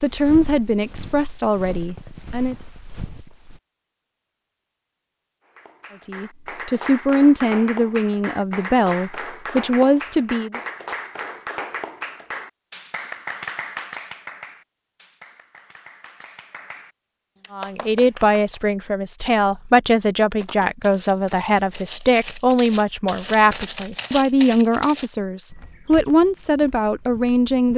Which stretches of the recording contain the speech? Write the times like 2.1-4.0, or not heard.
0.0-2.5, 6.0-10.6, 17.5-27.7.